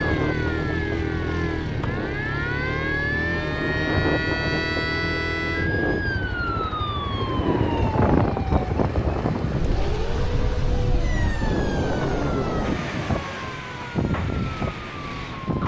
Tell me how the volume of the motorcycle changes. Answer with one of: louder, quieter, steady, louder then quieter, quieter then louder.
quieter.